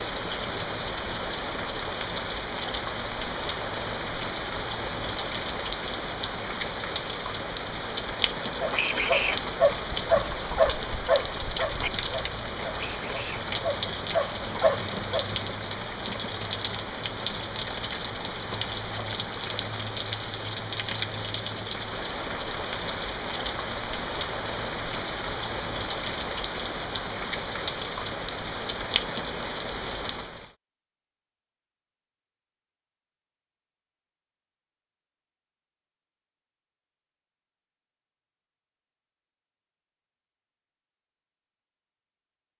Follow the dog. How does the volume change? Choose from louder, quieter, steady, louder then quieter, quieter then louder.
quieter then louder.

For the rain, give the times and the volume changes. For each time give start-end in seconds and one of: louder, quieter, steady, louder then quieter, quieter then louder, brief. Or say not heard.
0.0-30.5 steady.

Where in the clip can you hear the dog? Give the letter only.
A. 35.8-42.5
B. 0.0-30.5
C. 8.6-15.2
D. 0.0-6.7
C.